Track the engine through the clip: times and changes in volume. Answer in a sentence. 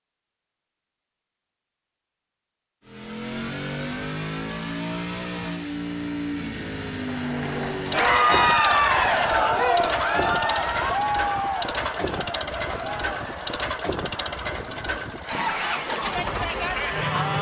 The engine can be heard from 2.9 to 17.3 s, at a steady volume.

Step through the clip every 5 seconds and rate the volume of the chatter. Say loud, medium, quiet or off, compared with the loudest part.
off, loud, medium, medium.